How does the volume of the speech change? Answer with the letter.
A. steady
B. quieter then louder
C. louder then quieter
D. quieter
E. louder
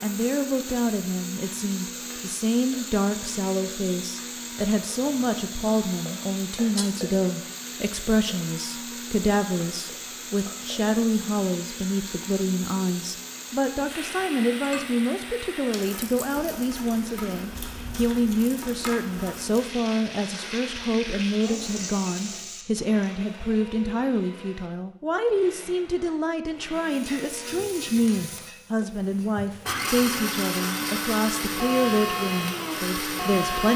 A.